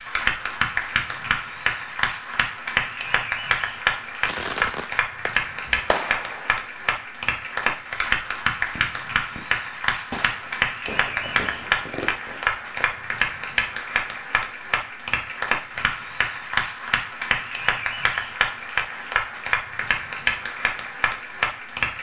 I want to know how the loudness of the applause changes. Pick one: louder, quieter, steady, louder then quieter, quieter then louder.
steady.